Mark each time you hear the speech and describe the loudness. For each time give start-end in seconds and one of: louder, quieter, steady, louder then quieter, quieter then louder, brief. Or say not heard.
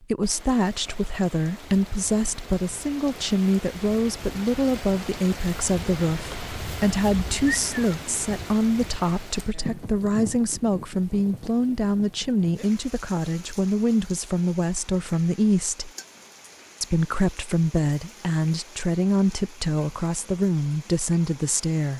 0.0-15.9 steady
16.8-21.9 steady.